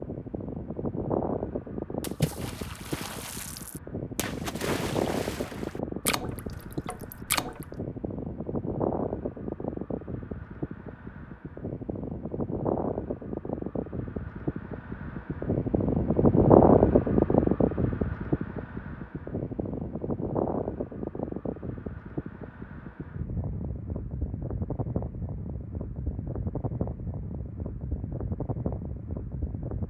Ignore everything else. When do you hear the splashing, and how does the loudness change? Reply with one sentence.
The splashing can be heard from 2.0 to 7.7 s, getting louder then quieter.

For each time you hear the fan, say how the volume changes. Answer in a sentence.
You can hear the fan from 0.0 to 29.8 s, getting louder then quieter.